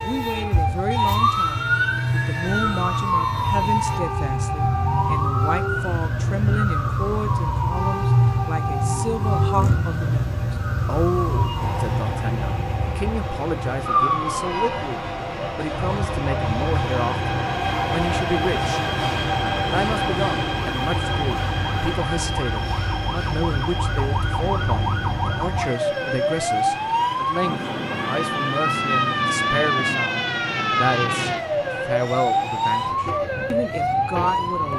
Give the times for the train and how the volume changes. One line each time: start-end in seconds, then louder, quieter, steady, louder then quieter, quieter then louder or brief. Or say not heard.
0.0-34.7 louder then quieter.